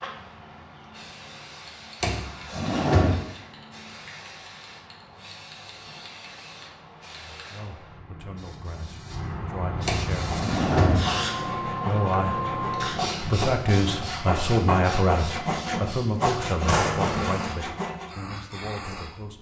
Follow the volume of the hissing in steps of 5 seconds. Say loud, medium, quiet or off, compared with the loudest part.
quiet, medium, loud, medium.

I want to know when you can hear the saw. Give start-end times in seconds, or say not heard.
10.1-18.2.